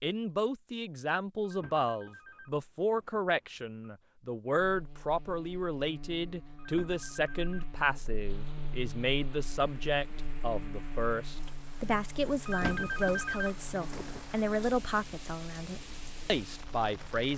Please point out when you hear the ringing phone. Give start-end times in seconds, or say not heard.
1.4-3.8, 6.5-8.2, 12.4-14.2.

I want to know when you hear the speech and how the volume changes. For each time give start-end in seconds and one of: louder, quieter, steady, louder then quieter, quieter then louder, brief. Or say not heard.
0.0-17.3 steady.